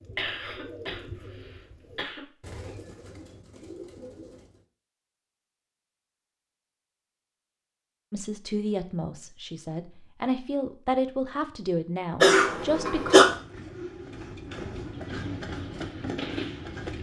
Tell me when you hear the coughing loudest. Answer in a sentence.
The volume of the coughing peaks at 13 seconds.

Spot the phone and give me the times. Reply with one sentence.
The phone can't be heard in this clip.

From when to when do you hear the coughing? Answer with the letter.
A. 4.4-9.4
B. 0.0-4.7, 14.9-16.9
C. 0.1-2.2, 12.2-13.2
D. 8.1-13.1
C.